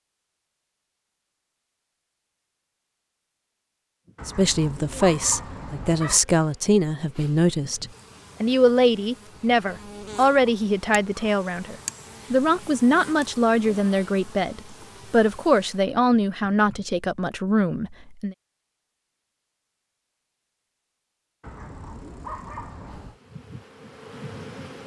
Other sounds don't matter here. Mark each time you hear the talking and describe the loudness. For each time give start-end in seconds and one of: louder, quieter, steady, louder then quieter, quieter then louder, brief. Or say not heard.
4.2-18.4 steady.